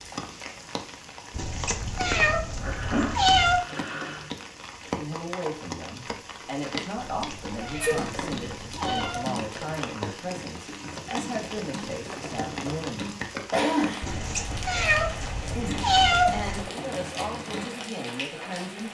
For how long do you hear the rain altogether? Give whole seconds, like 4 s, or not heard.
19 s.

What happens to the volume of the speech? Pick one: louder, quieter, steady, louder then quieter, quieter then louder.
steady.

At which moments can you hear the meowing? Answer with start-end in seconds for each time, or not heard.
1.3-3.6, 7.0-9.2, 14.0-16.6.